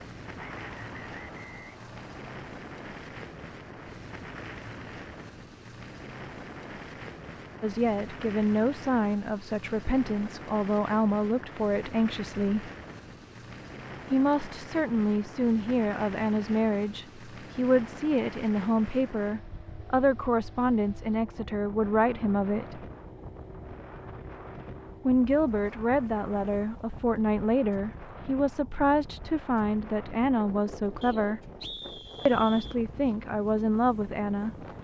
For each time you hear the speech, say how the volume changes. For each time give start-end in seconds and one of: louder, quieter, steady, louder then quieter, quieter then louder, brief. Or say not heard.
7.6-12.7 steady
14.1-22.9 steady
25.1-31.4 steady
32.2-34.5 brief.